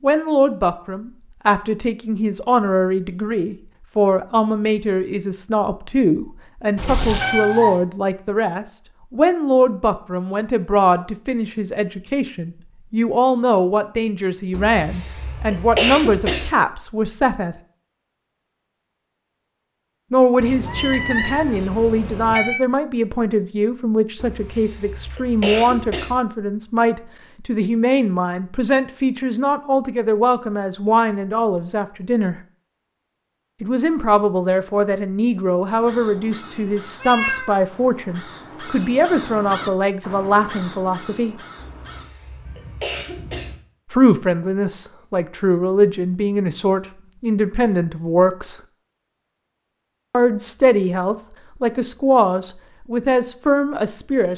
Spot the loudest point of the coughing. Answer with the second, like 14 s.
16 s.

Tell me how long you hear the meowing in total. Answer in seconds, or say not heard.
4 s.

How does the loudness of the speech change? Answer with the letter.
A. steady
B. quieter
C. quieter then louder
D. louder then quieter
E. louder
A.